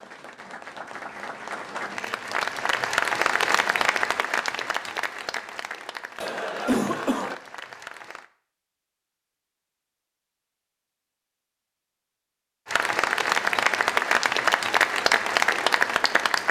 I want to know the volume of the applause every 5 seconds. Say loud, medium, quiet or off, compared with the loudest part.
medium, quiet, loud, loud.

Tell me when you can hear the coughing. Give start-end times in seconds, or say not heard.
6.2-7.3.